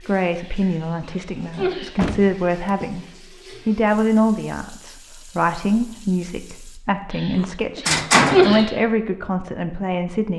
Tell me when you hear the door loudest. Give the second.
8 s.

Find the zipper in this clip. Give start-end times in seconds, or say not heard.
not heard.